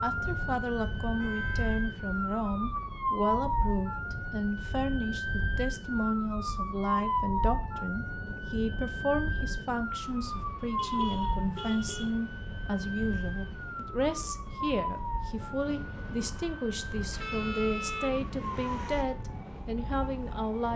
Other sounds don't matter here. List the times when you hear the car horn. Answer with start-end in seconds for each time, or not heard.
1.1-1.9, 10.8-12.1, 17.1-19.1.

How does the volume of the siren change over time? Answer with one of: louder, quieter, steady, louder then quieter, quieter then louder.
quieter.